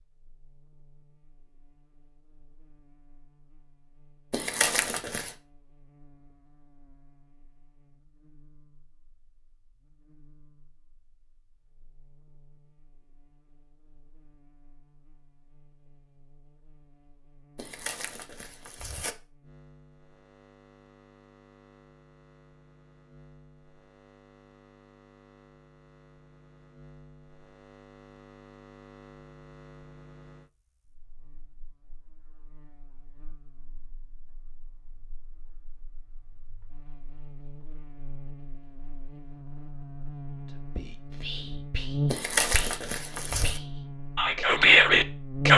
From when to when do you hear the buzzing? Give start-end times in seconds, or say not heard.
0.0-45.5.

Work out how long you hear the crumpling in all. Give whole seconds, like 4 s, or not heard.
4 s.